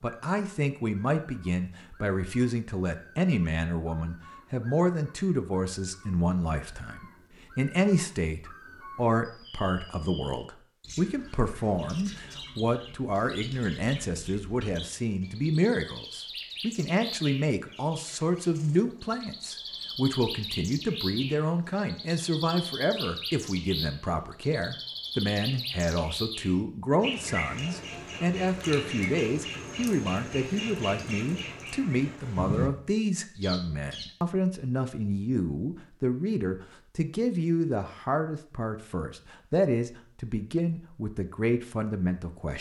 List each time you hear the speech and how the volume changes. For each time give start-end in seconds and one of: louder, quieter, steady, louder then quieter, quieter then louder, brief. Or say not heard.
0.0-42.5 steady.